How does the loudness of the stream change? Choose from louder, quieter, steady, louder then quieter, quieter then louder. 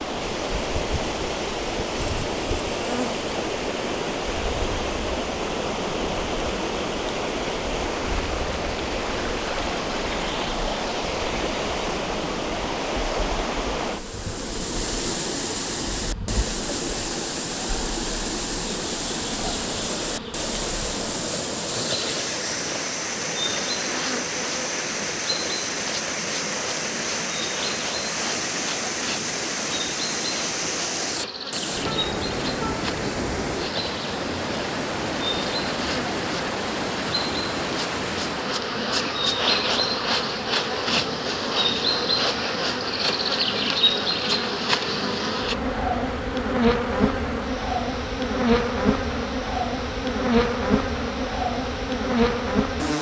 quieter.